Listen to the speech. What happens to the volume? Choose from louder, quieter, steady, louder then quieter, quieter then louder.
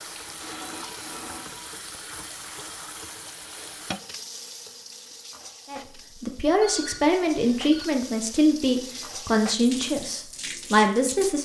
steady.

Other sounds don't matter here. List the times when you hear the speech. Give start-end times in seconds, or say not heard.
5.7-11.3.